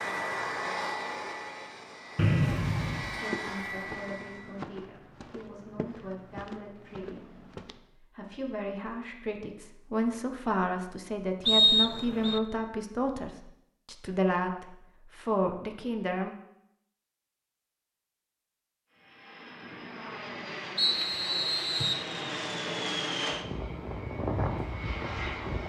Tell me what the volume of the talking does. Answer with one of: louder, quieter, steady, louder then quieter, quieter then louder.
louder.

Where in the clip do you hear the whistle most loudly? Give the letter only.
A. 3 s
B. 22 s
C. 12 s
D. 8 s
C.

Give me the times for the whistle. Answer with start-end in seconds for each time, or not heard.
2.1-3.1, 11.4-12.4, 20.8-22.1.